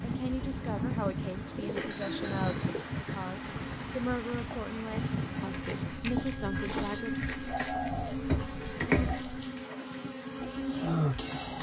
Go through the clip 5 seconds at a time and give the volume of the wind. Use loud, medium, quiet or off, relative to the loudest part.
loud, loud, off.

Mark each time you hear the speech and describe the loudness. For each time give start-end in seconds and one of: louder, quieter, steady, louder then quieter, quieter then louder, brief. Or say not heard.
0.0-7.2 steady.